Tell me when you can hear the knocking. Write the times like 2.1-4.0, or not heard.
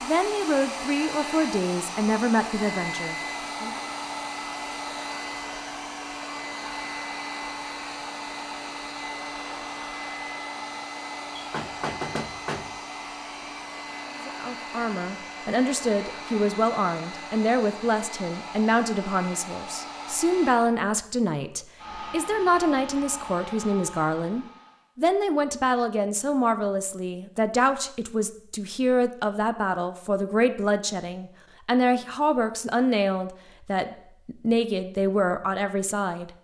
11.3-12.8.